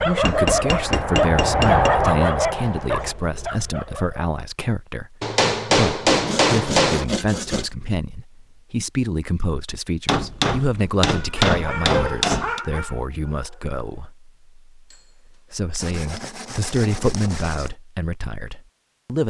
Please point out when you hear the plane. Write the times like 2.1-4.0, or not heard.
0.0-3.1.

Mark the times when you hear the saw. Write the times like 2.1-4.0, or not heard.
6.1-7.7, 15.8-17.7.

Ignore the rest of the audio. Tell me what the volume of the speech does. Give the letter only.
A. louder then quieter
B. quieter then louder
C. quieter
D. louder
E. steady
E.